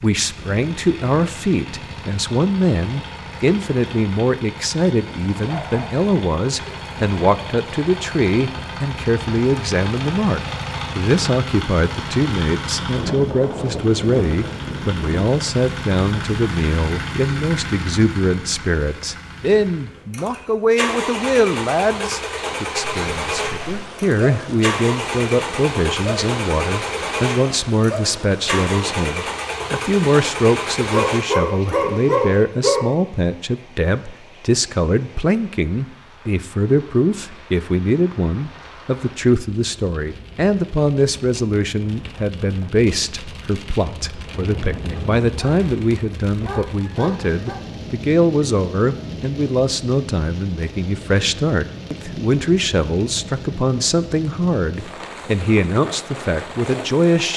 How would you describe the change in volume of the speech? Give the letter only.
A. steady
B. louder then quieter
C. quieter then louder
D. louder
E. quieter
A.